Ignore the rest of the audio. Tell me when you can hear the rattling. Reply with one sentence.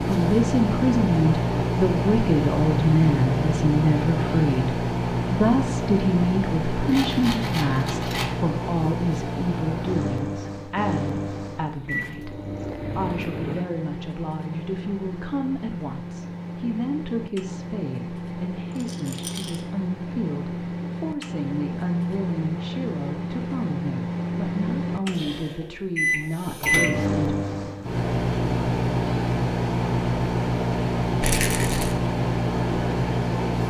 The rattling can be heard from 6.8 to 8.3 s, from 18.7 to 19.6 s and from 31.2 to 31.9 s.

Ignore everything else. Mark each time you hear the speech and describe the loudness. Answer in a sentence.
The speech can be heard from 0.1 to 27.1 s, getting quieter.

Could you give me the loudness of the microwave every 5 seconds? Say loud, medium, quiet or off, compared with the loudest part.
loud, loud, medium, medium, medium, loud, loud.